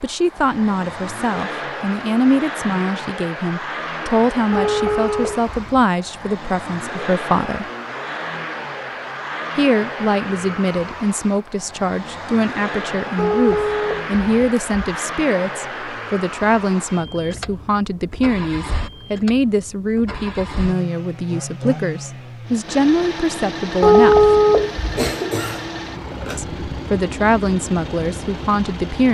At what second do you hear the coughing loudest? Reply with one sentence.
The loudest moment of the coughing is at 25 seconds.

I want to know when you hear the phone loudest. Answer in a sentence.
The loudest moment of the phone is at 24 seconds.